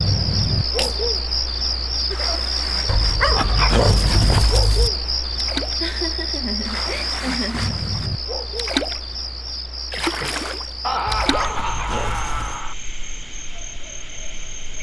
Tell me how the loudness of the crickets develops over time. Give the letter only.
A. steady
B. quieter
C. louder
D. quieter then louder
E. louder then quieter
B.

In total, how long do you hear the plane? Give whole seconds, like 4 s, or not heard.
not heard.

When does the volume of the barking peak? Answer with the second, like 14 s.
4 s.